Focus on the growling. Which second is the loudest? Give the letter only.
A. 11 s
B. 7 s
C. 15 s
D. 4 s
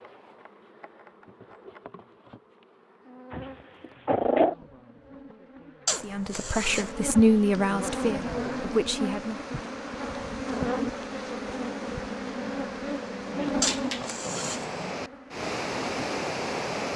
D.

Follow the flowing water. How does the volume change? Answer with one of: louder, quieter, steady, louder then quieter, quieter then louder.
louder.